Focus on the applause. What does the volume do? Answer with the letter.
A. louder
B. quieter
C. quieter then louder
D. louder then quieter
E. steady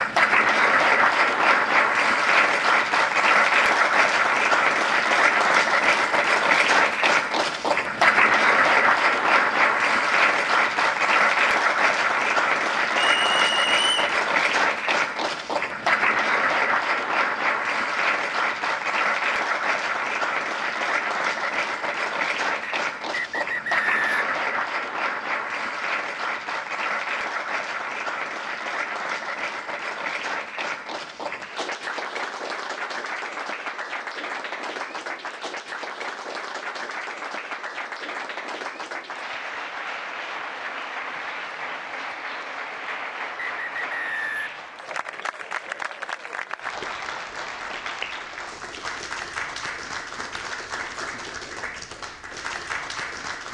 B.